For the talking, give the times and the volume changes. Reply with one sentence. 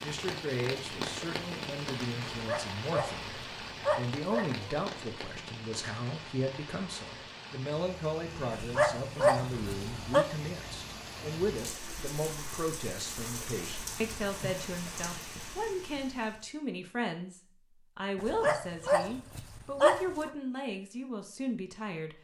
You can hear the talking from 0.0 to 22.1 s, at a steady volume.